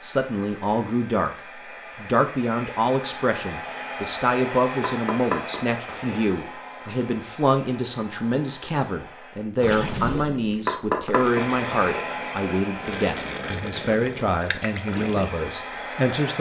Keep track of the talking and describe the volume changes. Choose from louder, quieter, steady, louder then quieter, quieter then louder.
steady.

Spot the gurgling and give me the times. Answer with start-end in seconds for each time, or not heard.
9.6-15.5.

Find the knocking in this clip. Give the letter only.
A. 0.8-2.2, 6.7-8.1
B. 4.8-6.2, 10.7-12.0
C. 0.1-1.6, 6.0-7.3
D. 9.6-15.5
B.